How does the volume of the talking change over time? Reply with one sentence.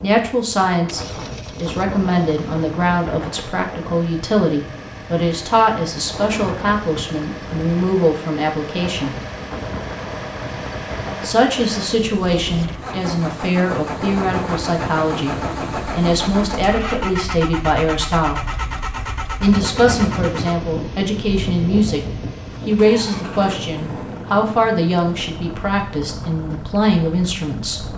The loudness of the talking stays about the same.